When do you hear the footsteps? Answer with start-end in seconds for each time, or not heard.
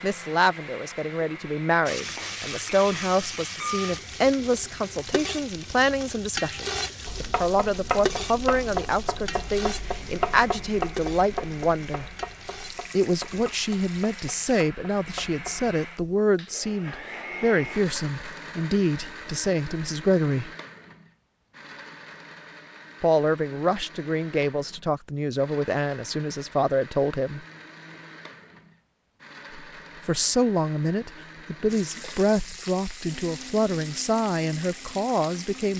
not heard.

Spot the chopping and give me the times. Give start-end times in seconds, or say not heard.
7.0-15.8.